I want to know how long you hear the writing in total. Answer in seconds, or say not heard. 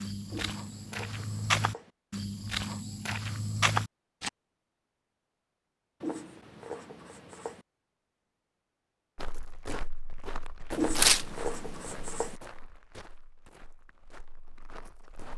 5 s.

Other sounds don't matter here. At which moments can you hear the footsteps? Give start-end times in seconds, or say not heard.
0.0-4.3, 9.2-15.3.